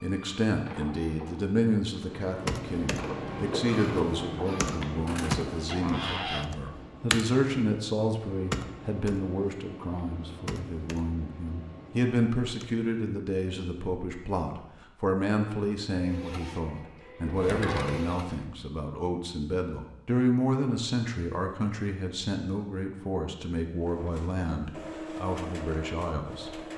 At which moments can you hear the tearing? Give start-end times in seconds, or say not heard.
not heard.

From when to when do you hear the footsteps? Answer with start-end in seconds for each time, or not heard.
not heard.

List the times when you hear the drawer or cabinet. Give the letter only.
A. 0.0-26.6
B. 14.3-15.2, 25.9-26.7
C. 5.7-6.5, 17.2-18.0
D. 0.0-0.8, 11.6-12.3
C.